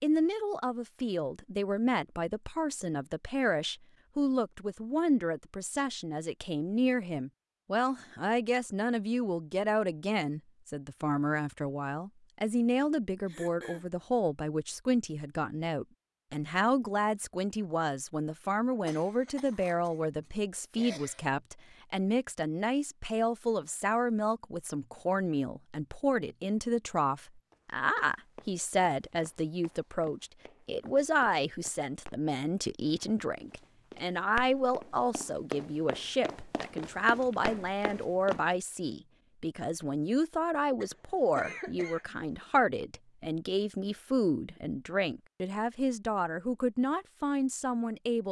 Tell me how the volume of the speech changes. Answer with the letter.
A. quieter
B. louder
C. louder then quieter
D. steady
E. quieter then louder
D.